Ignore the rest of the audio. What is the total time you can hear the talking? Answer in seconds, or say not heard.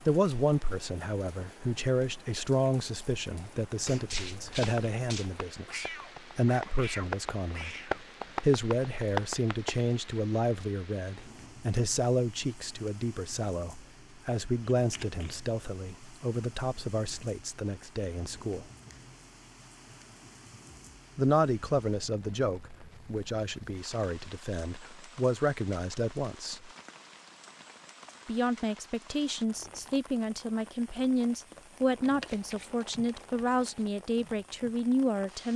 31 s.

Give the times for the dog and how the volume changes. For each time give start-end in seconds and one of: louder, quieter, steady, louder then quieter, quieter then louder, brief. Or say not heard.
not heard.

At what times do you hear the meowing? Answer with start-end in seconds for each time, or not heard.
5.7-8.1.